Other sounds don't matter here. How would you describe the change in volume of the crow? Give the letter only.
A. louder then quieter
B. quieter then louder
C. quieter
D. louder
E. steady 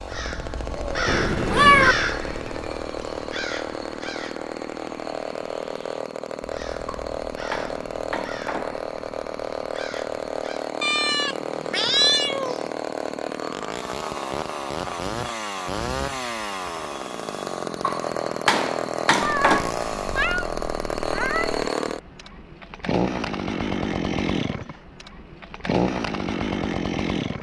B.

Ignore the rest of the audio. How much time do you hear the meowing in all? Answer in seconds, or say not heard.
5 s.